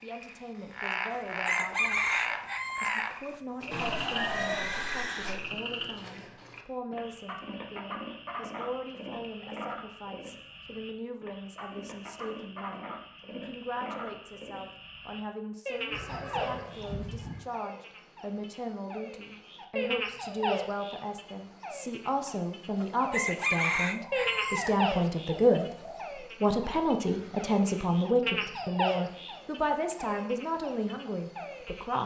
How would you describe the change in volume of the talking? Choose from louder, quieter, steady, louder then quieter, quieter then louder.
louder.